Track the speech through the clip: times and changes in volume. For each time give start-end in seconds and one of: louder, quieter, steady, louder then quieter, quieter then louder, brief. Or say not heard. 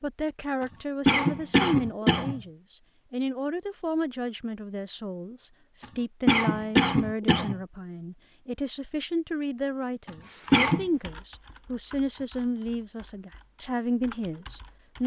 0.0-15.0 steady.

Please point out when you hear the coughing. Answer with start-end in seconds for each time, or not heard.
0.6-2.4, 5.8-7.5, 10.1-10.8.